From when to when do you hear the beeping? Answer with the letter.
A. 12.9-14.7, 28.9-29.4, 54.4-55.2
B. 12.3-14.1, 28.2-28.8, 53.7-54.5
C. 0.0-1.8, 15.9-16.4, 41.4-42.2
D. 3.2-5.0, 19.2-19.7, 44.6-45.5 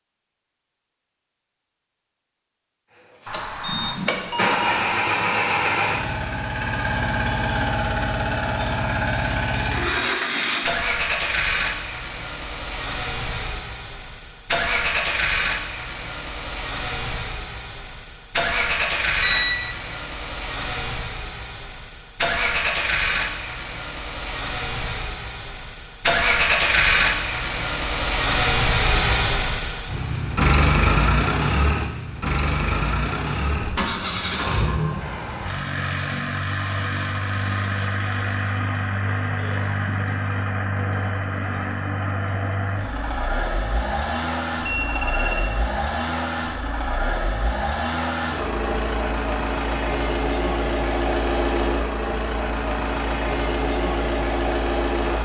D.